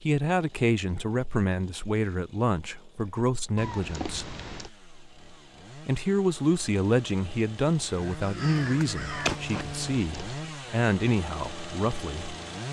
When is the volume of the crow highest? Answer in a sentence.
The volume of the crow peaks at 9 seconds.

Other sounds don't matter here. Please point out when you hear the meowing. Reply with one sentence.
The meowing can be heard from 3.5 to 4.7 s and from 9.1 to 10.4 s.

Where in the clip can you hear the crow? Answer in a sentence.
The crow can be heard from 7.8 to 9.7 s.